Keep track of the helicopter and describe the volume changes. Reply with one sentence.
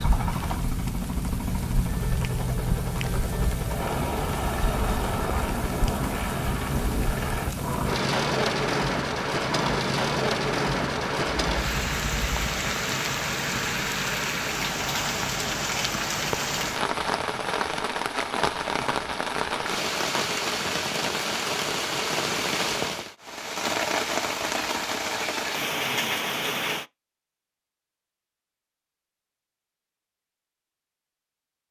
The volume of the helicopter stays about the same.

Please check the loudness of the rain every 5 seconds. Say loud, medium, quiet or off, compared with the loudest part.
medium, loud, loud, loud, loud, loud, off.